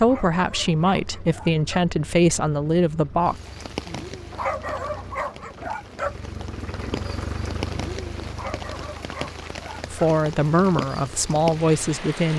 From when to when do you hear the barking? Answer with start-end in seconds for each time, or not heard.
0.0-1.9, 4.3-6.2, 8.3-10.0.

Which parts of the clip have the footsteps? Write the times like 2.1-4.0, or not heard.
not heard.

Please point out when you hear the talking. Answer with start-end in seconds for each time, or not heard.
0.0-3.4, 9.9-12.3.